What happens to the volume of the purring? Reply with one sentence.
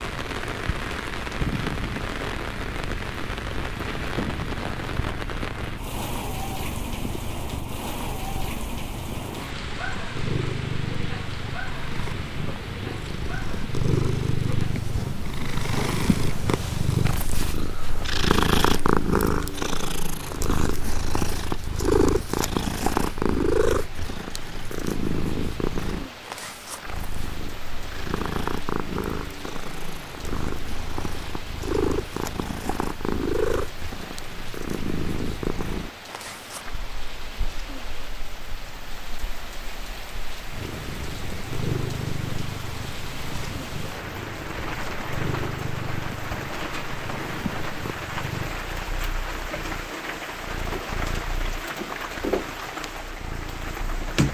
The volume of the purring goes up, then down.